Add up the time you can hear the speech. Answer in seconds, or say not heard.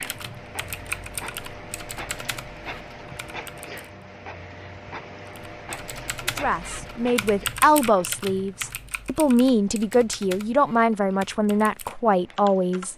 7 s.